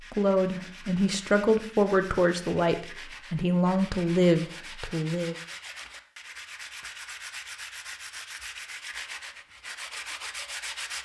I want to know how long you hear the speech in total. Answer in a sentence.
You can hear the speech for 5 seconds altogether.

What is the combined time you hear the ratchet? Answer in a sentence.
You can't hear the ratchet here.